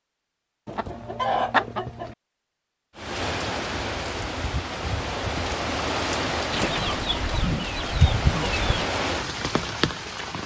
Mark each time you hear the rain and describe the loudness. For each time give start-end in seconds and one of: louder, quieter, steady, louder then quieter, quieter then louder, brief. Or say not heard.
3.0-10.4 steady.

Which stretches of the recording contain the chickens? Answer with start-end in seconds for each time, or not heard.
0.7-2.1, 6.5-8.9.